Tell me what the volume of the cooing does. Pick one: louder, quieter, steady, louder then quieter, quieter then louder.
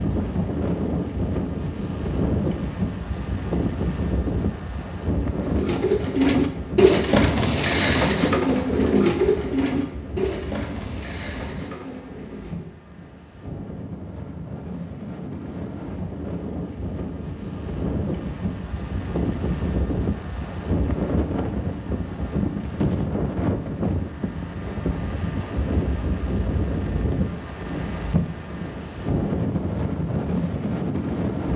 quieter.